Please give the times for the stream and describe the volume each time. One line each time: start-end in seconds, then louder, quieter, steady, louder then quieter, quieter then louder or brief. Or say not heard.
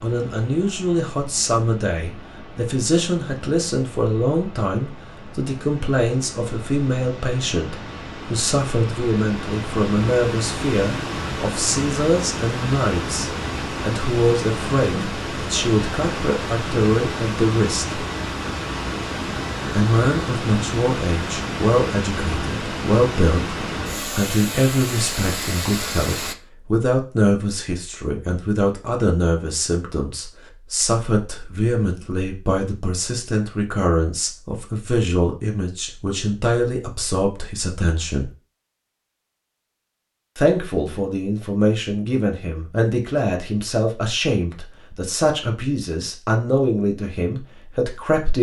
0.0-26.4 louder.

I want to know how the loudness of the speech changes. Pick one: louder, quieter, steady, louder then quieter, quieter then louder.
steady.